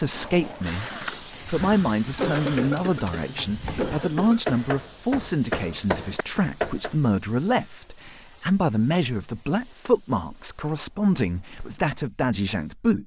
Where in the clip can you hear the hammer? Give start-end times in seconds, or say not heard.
1.3-6.9.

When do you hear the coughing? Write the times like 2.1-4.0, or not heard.
2.2-4.5.